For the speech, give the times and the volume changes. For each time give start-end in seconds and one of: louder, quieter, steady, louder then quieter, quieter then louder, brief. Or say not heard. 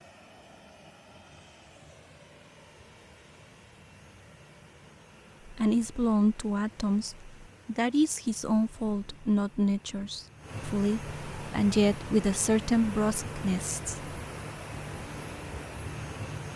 5.5-14.1 steady.